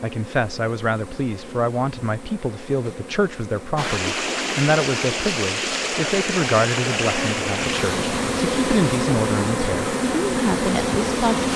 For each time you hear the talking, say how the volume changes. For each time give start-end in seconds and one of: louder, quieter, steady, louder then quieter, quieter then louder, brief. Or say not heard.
0.0-11.5 steady.